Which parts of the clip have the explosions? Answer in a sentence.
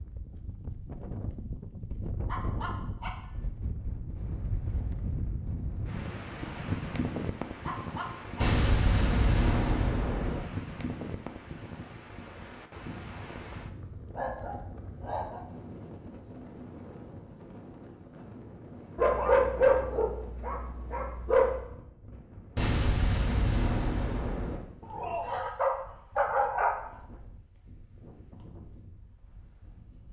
The explosions can be heard from 8.4 to 10.4 s and from 22.6 to 24.6 s.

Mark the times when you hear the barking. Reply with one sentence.
You can hear the barking from 2.2 to 3.1 s, from 7.7 to 8.5 s, from 14.2 to 15.4 s, from 18.9 to 21.6 s and from 24.9 to 26.8 s.